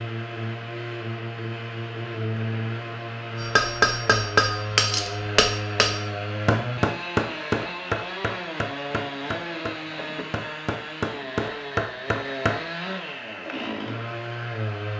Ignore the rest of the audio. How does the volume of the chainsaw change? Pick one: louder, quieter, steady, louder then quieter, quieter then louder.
steady.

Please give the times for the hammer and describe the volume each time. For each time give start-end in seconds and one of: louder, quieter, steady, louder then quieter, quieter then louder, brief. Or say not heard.
3.4-12.7 quieter then louder.